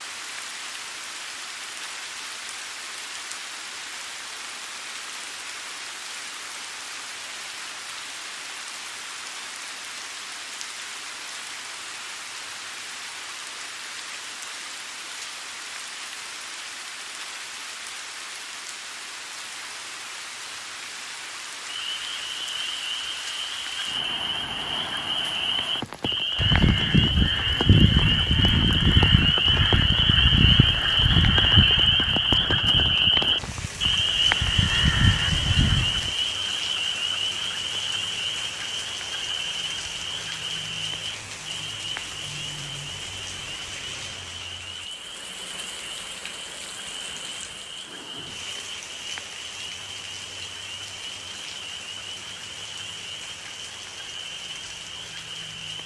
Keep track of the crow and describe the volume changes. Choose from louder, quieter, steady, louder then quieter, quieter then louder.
quieter then louder.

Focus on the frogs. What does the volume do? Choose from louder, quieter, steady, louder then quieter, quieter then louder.
louder then quieter.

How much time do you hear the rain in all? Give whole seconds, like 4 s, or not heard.
56 s.